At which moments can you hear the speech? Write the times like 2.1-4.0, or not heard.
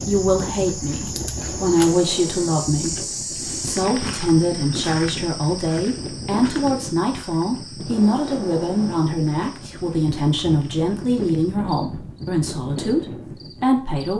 0.1-14.1.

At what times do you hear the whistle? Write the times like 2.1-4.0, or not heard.
not heard.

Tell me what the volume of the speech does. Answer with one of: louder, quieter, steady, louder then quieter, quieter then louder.
steady.